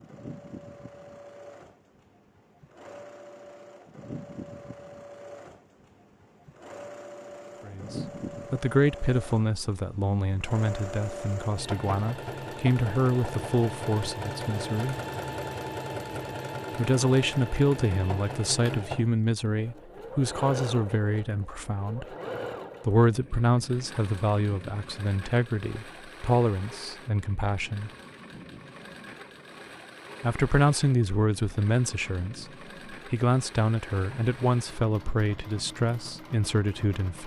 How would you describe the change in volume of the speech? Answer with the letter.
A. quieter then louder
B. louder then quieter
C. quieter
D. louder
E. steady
E.